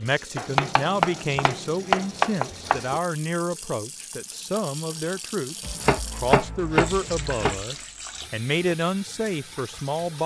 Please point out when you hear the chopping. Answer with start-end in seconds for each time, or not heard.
0.3-2.9, 5.6-7.7.